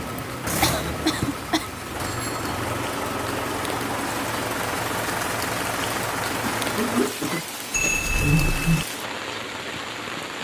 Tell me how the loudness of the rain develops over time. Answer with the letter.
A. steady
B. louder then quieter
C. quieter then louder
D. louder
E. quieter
D.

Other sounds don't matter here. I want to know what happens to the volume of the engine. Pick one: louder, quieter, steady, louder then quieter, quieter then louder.
quieter.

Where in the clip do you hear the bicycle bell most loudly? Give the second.
8 s.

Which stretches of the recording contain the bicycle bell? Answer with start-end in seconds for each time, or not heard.
2.0-2.5, 7.7-8.8.